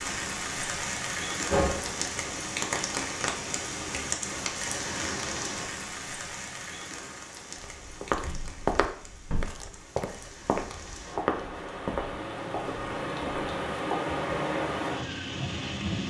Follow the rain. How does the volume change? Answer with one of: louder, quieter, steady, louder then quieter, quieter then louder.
quieter then louder.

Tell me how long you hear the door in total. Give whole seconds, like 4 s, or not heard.
2 s.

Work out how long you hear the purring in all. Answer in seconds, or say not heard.
not heard.